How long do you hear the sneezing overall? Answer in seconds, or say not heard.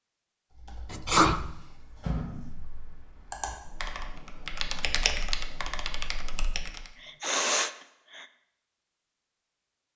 2 s.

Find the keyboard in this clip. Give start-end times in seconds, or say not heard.
0.5-6.9.